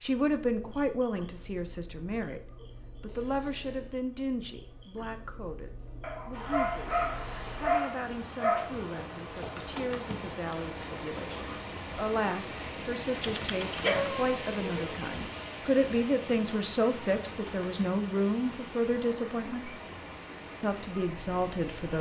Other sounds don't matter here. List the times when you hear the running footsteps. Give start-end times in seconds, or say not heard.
not heard.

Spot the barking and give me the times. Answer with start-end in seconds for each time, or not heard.
6.0-8.7, 13.2-14.9.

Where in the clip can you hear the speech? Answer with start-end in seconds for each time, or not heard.
0.0-2.4, 3.0-19.8, 20.6-21.9.